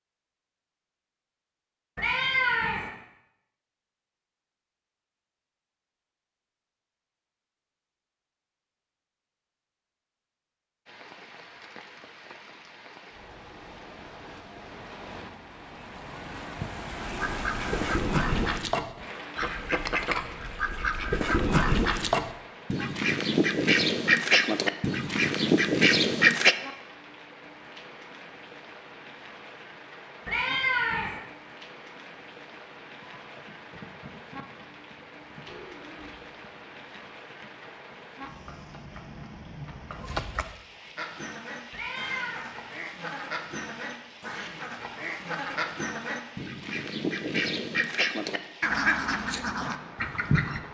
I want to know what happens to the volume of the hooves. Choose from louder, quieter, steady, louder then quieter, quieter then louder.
louder.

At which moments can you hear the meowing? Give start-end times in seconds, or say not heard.
1.9-2.9, 30.2-31.2, 41.7-42.5.